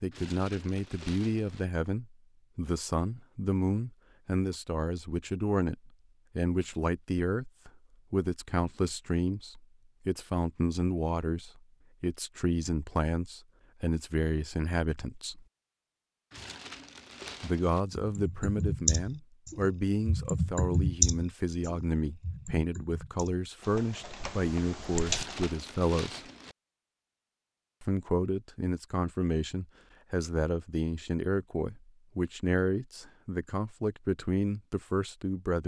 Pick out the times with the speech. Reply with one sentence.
You can hear the speech from 0.0 to 15.4 s, from 17.4 to 26.2 s and from 27.8 to 35.6 s.